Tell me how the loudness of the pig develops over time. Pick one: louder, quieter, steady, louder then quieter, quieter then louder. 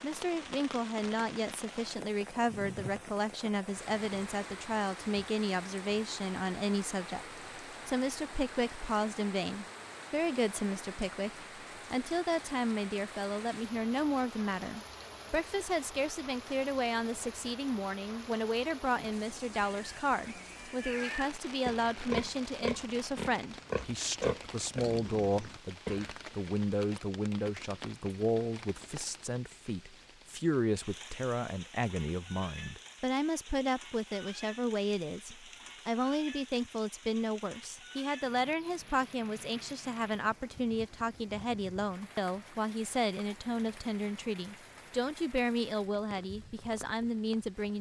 louder then quieter.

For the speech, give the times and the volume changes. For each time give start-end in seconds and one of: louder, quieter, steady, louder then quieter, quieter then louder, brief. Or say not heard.
0.0-47.7 steady.